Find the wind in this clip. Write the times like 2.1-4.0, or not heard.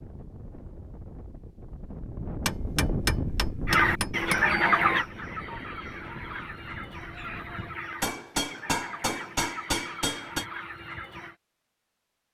0.0-7.8.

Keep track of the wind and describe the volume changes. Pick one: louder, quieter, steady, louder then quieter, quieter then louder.
louder then quieter.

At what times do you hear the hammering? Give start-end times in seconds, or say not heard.
2.5-4.5, 8.0-10.4.